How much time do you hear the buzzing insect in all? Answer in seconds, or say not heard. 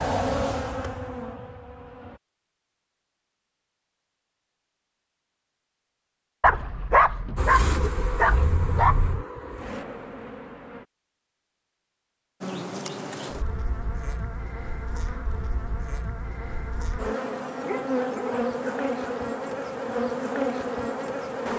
15 s.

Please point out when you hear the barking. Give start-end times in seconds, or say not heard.
6.4-9.2, 17.6-18.9.